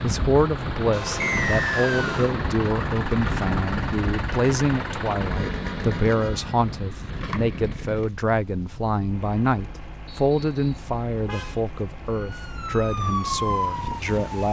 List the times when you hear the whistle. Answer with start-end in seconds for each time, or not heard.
1.2-2.1, 10.1-10.9.